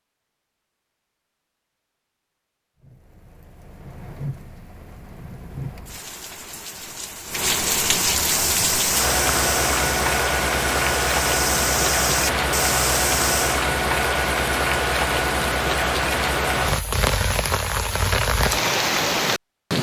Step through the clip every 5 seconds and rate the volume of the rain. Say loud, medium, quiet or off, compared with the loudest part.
quiet, loud, loud, loud.